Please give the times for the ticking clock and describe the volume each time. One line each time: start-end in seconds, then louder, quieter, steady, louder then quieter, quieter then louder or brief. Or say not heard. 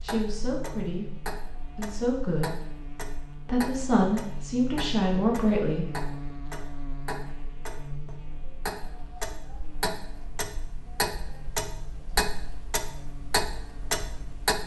0.0-14.6 louder.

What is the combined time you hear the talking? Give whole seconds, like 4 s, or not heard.
5 s.